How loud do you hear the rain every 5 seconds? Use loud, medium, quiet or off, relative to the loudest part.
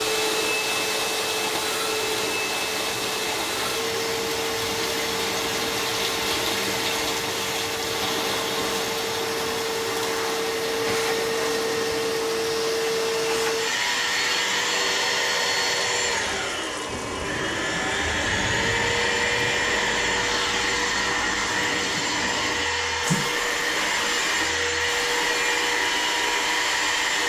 loud, loud, medium, medium, medium, medium.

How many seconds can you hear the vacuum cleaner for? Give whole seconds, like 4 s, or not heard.
27 s.